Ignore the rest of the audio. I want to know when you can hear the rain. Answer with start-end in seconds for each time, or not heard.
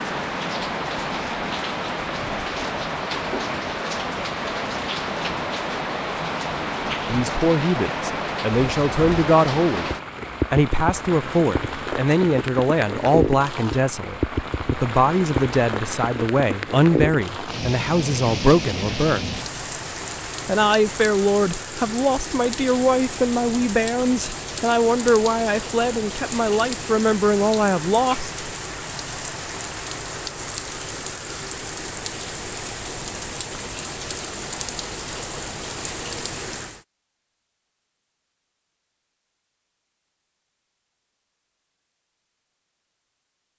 0.0-36.9.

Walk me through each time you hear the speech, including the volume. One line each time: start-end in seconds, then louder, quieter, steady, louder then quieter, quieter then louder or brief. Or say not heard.
7.0-9.9 brief
10.5-19.4 steady
20.4-28.3 steady.